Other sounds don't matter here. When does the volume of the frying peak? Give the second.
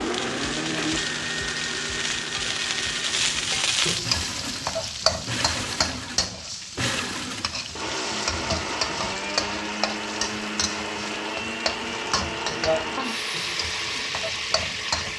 4 s.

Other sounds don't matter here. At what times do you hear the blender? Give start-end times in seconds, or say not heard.
0.0-15.1.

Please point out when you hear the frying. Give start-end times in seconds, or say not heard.
0.0-15.1.